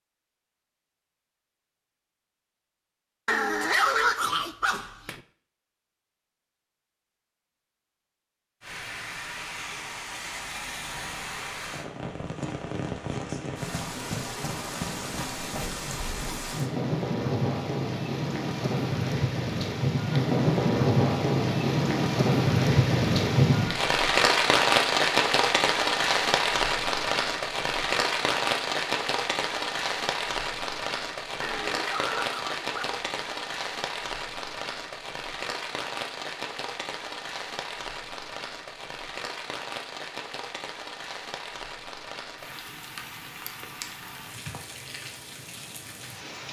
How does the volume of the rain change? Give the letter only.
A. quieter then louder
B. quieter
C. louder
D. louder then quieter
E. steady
D.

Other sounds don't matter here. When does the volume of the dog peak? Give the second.
4 s.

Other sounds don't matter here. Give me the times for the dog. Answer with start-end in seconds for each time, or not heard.
3.2-5.2, 31.4-33.4.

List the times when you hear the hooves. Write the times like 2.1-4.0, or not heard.
not heard.